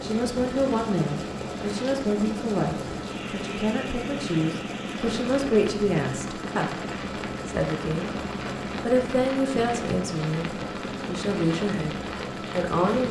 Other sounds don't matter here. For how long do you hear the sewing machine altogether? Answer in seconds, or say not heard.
13 s.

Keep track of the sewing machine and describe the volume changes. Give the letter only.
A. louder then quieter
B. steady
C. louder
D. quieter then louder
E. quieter
B.